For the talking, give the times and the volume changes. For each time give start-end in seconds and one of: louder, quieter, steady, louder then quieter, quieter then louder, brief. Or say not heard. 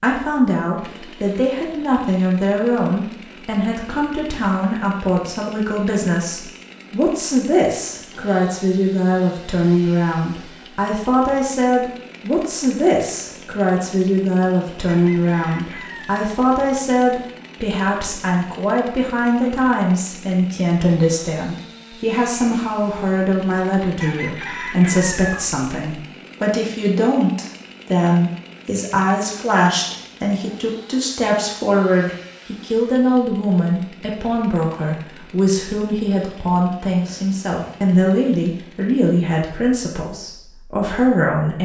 0.0-41.6 steady.